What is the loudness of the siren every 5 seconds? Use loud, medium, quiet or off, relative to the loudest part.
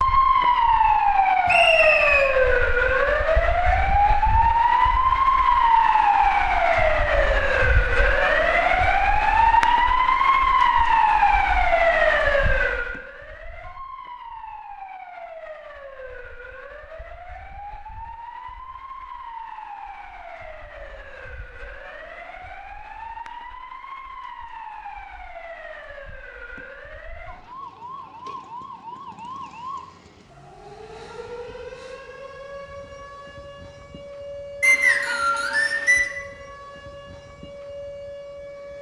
loud, loud, loud, quiet, quiet, quiet, quiet, quiet.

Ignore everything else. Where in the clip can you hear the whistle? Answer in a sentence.
The whistle can be heard from 1.4 to 2.3 s and from 34.6 to 36.0 s.